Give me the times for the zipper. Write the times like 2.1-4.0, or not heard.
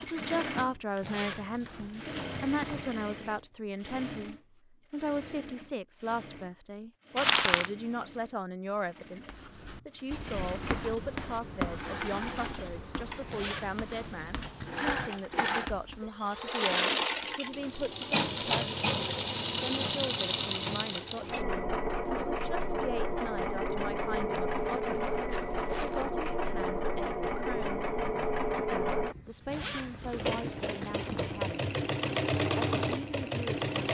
1.0-2.9, 13.2-15.1, 29.4-31.3.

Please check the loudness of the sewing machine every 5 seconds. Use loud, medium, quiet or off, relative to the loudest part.
medium, quiet, medium, loud, loud, loud, loud.